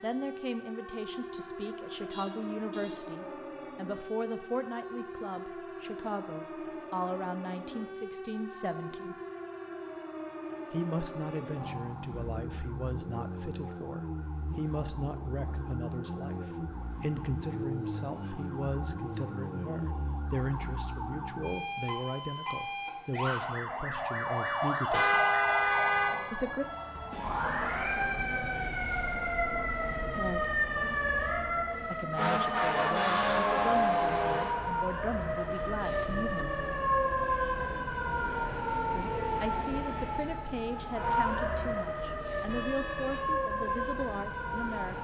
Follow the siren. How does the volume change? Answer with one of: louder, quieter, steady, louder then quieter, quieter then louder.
louder.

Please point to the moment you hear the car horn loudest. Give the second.
25 s.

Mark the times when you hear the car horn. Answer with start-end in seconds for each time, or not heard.
2.1-2.9, 24.9-26.1, 42.5-43.2.